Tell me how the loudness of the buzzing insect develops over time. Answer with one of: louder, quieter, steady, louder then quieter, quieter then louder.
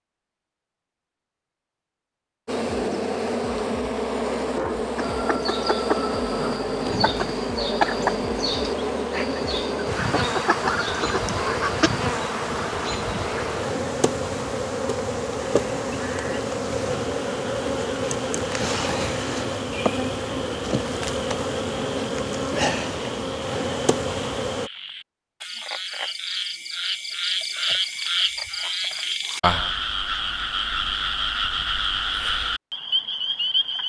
steady.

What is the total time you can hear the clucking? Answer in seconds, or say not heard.
7 s.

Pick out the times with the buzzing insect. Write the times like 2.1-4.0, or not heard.
2.5-24.7.